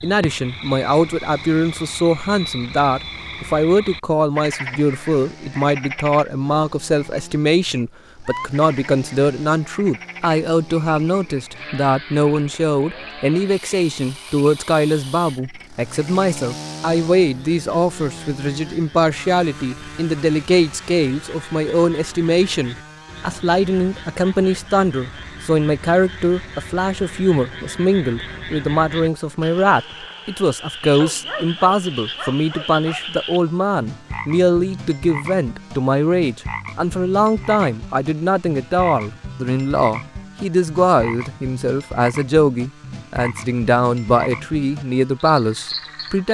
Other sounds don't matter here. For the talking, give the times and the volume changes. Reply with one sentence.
You can hear the talking from 0.0 to 46.2 s, at a steady volume.